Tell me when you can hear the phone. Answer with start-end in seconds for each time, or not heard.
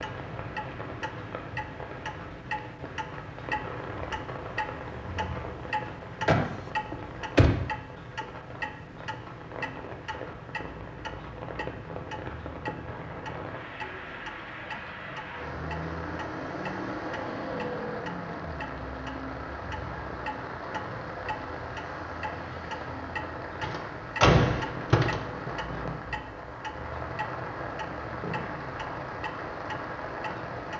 not heard.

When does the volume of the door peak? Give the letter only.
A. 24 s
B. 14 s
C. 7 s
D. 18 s
A.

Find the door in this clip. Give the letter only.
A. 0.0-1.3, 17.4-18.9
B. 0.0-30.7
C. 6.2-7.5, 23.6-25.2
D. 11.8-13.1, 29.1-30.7
C.